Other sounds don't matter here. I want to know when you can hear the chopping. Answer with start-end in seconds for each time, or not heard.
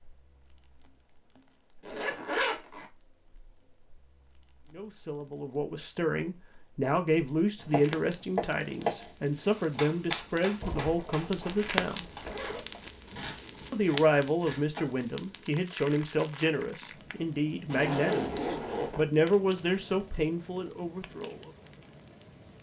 7.5-14.9.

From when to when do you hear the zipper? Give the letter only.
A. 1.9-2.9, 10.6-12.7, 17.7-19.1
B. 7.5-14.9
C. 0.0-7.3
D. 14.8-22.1
A.